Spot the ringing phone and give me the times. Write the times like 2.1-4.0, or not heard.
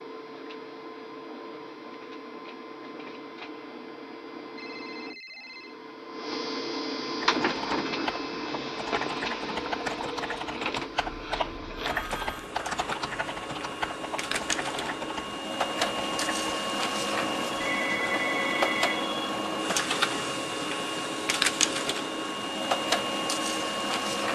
4.5-5.8, 10.8-12.4, 17.6-19.1.